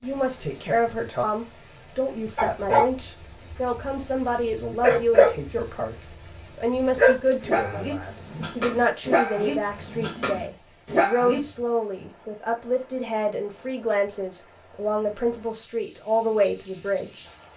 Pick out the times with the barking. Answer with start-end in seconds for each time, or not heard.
2.4-11.4.